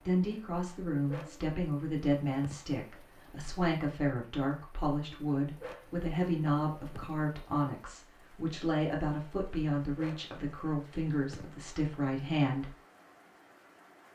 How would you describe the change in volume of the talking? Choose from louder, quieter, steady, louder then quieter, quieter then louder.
steady.